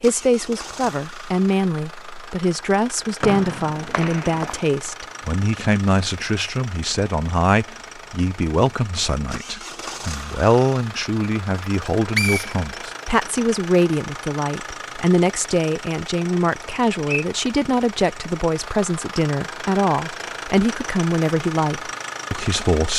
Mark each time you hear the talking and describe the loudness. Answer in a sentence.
The talking can be heard from 0.0 to 22.9 s, at a steady volume.